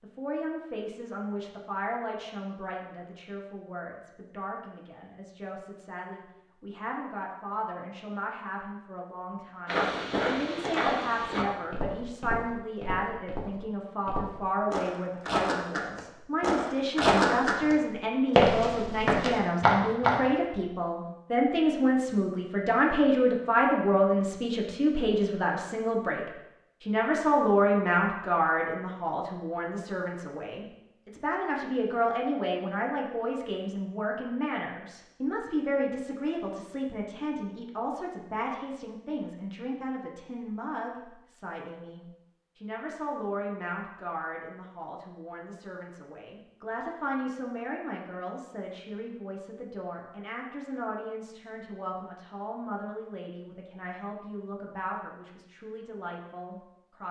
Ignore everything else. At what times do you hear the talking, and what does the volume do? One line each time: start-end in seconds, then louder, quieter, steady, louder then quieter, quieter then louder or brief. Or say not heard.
0.0-26.2 louder
26.8-57.0 quieter.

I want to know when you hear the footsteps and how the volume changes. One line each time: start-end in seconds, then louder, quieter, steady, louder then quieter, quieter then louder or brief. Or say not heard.
9.7-20.3 quieter then louder.